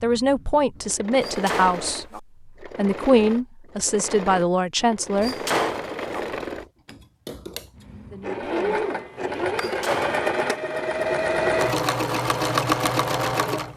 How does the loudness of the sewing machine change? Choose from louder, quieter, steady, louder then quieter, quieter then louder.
louder.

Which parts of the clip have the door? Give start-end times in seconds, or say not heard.
1.2-2.2, 5.2-6.2, 9.6-10.6.